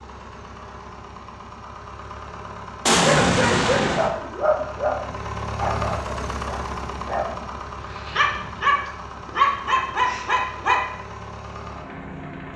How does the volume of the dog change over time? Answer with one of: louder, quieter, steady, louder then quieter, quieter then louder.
quieter then louder.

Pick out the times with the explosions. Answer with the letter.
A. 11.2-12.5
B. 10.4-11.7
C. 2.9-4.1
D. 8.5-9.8
C.